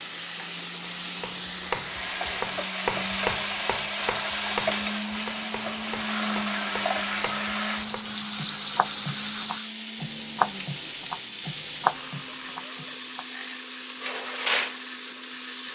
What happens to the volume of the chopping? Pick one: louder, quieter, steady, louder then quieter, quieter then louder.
quieter then louder.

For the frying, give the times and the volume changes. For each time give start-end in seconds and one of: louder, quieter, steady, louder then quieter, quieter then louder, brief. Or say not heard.
0.0-15.7 steady.